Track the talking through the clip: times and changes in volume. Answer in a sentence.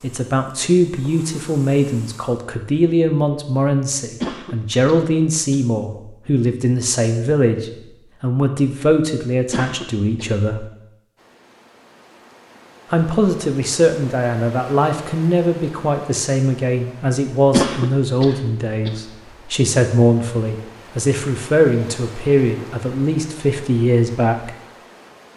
The talking can be heard from 0.0 to 10.7 s, at a steady volume; and from 12.9 to 24.6 s, at a steady volume.